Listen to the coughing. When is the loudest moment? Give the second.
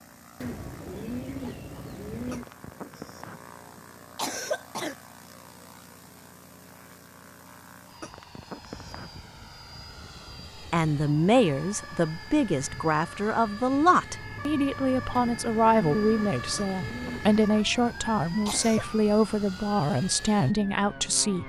4 s.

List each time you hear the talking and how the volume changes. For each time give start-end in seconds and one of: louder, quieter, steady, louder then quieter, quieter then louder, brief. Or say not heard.
10.7-21.4 steady.